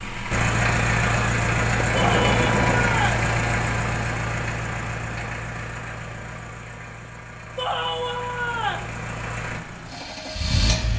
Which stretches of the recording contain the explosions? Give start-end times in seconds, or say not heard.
1.8-3.0.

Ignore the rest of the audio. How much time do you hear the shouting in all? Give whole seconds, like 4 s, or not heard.
3 s.